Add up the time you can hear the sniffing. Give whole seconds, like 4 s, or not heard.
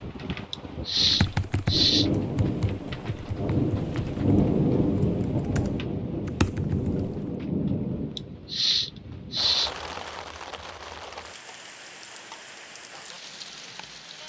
3 s.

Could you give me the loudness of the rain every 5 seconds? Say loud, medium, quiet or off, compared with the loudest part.
loud, loud, quiet.